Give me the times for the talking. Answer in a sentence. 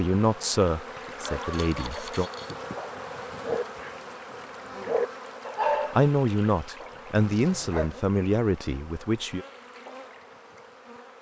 The talking can be heard from 0.0 to 2.2 s and from 5.9 to 9.4 s.